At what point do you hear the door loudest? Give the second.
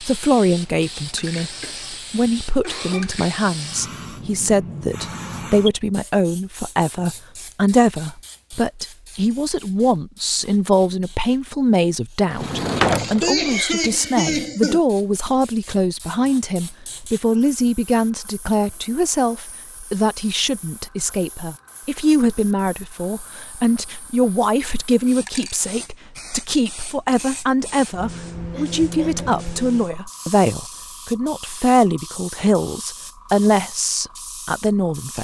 13 s.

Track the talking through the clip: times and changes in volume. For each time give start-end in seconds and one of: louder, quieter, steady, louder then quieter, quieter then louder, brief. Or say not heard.
0.0-35.1 steady.